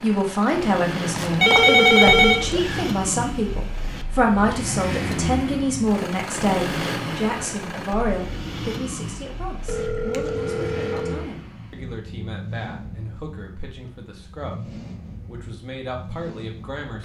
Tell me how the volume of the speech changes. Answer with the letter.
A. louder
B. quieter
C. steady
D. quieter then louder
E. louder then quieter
B.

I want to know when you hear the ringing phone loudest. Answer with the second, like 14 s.
2 s.